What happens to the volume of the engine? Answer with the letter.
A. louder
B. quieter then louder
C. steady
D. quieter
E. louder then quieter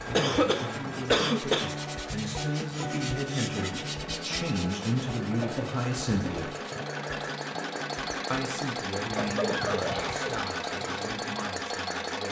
A.